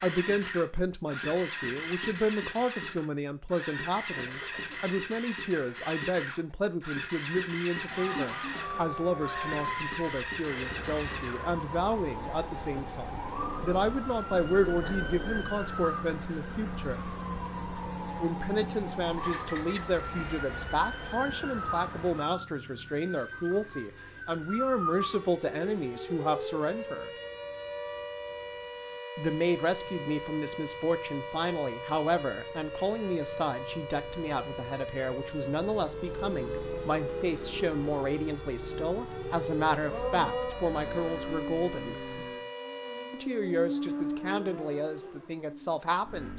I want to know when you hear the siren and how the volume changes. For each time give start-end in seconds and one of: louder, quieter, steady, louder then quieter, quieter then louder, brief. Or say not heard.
7.8-43.3 steady.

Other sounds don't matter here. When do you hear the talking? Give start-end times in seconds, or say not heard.
0.0-17.1, 18.2-27.1, 29.1-42.0, 43.1-46.3.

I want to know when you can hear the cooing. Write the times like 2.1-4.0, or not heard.
not heard.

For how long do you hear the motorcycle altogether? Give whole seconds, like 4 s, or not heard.
46 s.